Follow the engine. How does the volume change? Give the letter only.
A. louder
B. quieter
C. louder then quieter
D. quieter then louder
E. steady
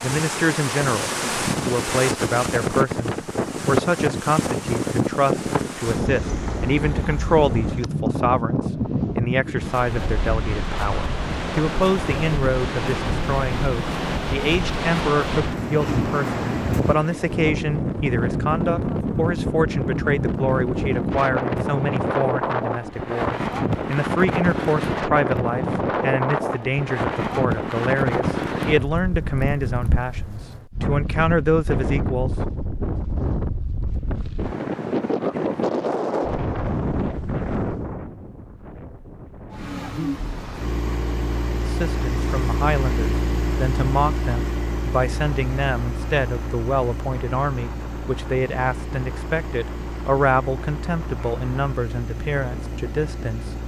B.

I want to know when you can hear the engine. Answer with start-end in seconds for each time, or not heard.
39.5-53.6.